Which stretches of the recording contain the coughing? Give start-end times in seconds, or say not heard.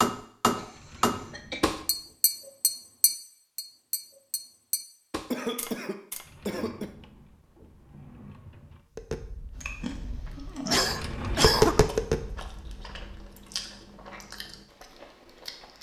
0.6-1.8, 5.3-6.9, 10.7-11.8.